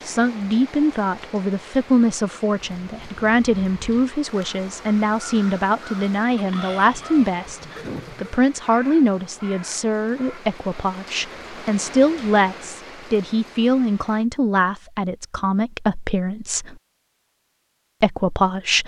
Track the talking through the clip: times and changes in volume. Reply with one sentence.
You can hear the talking from 0.1 to 16.8 s, at a steady volume; and briefly from 18.0 to 18.8 s.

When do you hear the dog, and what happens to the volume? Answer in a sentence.
You can't hear the dog here.